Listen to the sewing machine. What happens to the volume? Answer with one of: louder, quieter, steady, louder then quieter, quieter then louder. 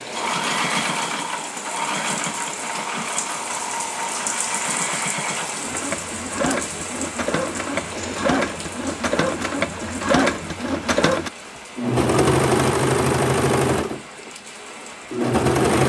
louder.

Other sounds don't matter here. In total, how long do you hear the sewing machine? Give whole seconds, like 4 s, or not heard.
16 s.